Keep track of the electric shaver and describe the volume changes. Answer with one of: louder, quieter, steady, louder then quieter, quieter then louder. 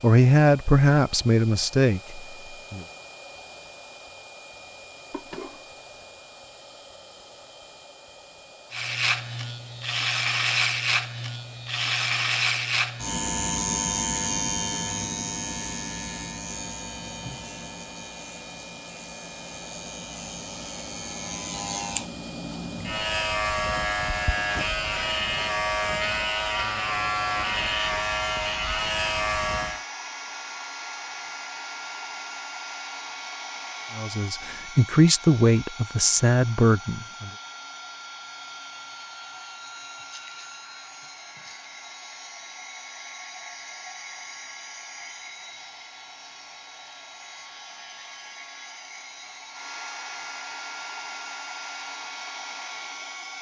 quieter then louder.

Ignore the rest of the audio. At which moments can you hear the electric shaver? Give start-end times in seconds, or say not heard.
8.7-29.9.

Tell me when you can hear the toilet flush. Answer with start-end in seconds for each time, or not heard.
5.1-5.8.